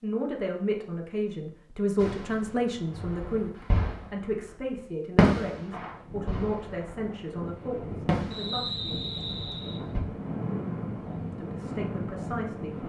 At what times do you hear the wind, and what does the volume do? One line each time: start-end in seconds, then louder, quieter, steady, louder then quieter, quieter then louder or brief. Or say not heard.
5.5-12.8 louder.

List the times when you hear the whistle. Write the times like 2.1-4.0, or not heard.
8.3-9.8.